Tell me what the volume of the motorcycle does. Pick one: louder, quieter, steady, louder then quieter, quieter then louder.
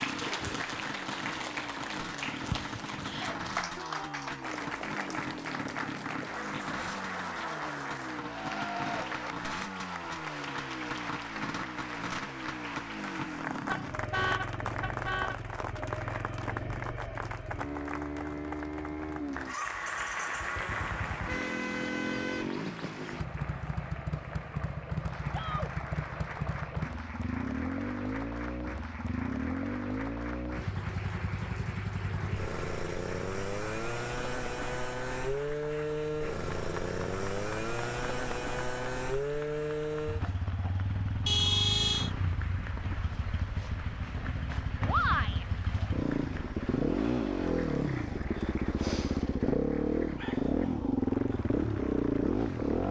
louder.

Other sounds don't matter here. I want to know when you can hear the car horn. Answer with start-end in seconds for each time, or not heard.
13.5-15.3, 20.7-22.5, 41.2-42.1.